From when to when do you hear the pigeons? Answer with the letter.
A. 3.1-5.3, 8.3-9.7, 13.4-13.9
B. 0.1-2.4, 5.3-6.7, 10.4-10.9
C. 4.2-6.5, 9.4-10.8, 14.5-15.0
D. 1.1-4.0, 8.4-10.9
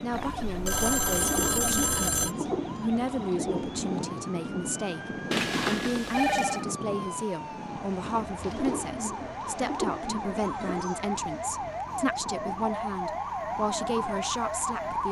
D.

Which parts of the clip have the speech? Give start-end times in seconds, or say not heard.
0.0-15.0.